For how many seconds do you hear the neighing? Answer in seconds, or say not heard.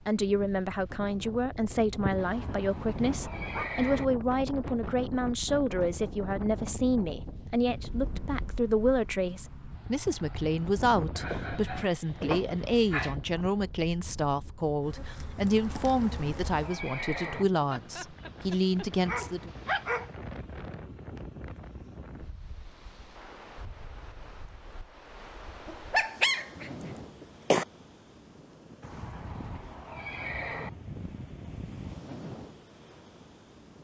6 s.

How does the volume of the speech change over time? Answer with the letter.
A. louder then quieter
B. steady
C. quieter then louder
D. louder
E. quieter
B.